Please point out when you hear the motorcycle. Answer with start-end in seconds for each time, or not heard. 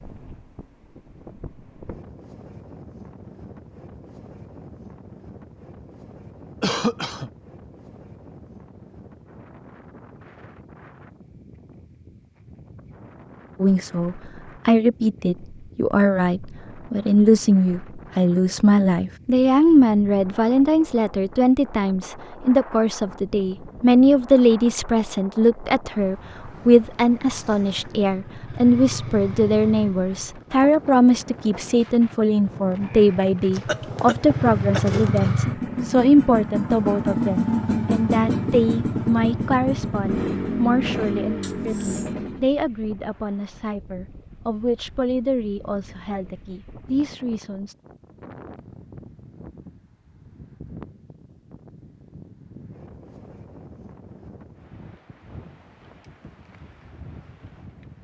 27.4-42.5.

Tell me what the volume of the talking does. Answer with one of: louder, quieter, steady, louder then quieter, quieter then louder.
quieter.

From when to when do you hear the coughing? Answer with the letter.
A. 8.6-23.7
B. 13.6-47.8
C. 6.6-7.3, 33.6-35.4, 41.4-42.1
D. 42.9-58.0
C.